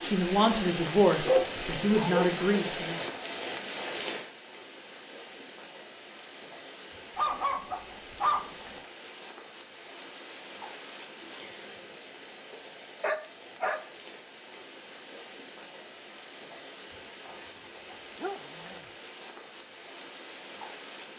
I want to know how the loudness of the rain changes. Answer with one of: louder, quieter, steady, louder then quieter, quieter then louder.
quieter.